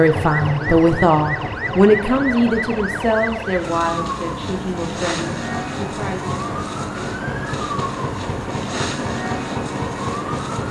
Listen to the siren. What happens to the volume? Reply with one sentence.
The volume of the siren stays about the same.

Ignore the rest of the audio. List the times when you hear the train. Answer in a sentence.
The train can be heard from 0.0 to 10.6 s.